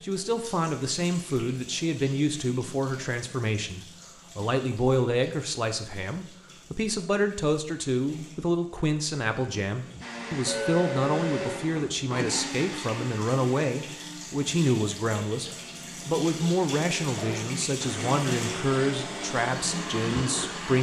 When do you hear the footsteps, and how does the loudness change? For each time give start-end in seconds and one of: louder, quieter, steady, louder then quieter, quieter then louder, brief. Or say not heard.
not heard.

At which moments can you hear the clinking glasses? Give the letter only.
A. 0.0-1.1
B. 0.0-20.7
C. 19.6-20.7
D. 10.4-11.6
D.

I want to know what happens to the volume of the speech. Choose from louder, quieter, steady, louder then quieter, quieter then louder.
steady.